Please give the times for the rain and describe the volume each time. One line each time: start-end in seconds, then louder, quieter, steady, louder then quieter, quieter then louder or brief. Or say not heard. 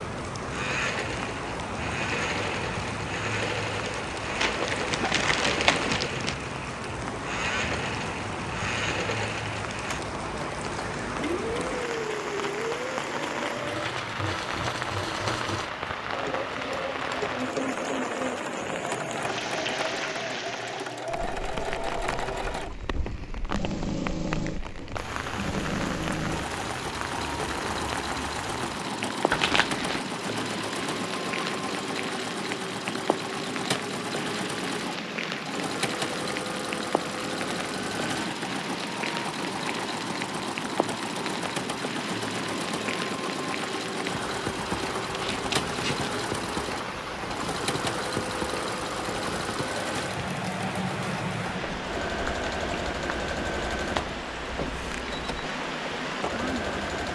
0.0-57.0 steady.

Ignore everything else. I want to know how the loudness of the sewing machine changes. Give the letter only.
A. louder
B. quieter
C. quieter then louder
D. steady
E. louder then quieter
D.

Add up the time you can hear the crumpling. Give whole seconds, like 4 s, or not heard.
4 s.